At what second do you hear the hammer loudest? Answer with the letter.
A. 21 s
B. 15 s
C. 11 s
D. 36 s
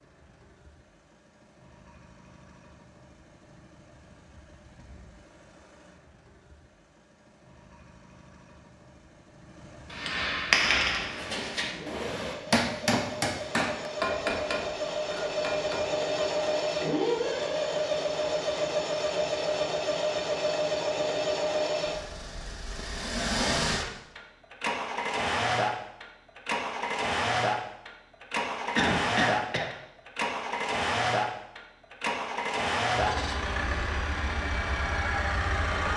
C.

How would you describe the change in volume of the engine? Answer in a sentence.
The loudness of the engine goes up.